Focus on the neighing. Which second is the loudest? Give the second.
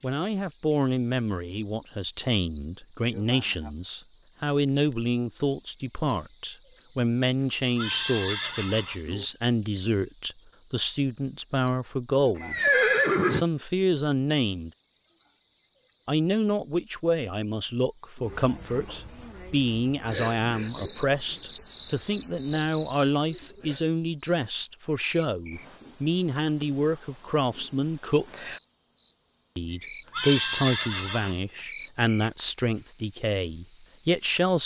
13 s.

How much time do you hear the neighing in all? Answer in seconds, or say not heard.
4 s.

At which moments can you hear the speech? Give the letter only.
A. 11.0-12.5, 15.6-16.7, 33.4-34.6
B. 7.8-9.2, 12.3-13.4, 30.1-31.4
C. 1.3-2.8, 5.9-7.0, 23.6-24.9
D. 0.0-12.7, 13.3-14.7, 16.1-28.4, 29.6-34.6
D.